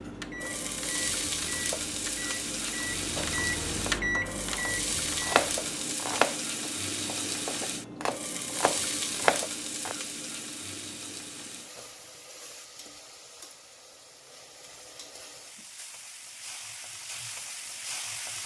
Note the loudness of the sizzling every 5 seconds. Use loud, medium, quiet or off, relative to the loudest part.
loud, loud, medium, medium.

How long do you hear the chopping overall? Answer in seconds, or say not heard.
7 s.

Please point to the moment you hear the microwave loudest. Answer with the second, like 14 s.
4 s.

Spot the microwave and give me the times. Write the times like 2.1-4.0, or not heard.
0.0-6.0.